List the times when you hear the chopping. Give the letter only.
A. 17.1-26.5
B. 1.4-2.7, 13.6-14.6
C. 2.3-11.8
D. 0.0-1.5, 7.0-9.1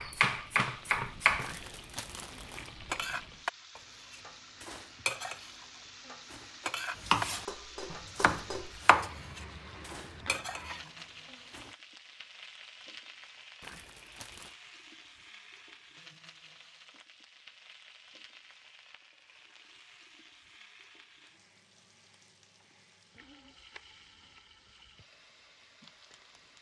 D.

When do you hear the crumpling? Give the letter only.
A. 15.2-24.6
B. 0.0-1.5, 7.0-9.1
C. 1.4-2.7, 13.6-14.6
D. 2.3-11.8
C.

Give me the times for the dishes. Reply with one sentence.
You can hear the dishes from 2.3 to 11.8 s.